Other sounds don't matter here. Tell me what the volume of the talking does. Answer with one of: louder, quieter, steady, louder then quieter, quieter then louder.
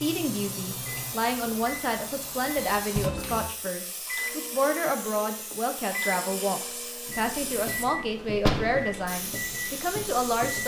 steady.